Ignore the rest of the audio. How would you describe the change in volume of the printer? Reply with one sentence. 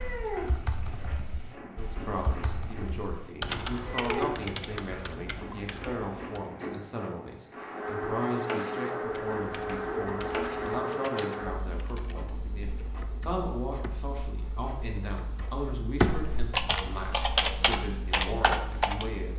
The loudness of the printer goes up, then down.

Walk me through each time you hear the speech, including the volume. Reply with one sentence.
The speech can be heard from 1.8 to 19.3 s, at a steady volume.